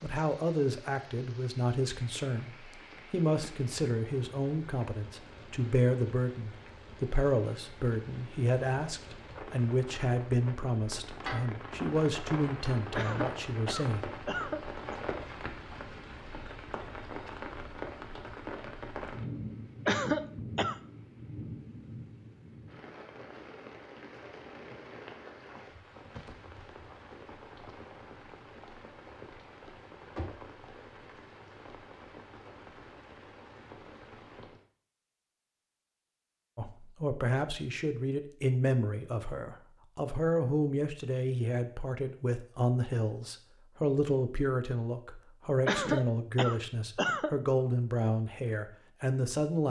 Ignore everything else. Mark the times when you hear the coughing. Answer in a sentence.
The coughing can be heard from 12.9 to 14.9 s, from 19.9 to 20.8 s and from 45.6 to 47.4 s.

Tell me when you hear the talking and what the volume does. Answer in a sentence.
You can hear the talking from 0.0 to 14.1 s, at a steady volume; and from 36.5 to 49.6 s, at a steady volume.